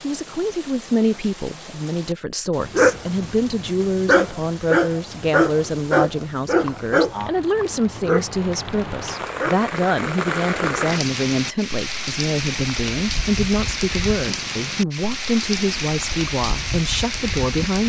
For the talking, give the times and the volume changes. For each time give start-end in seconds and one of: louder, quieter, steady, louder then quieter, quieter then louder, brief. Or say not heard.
0.0-17.8 steady.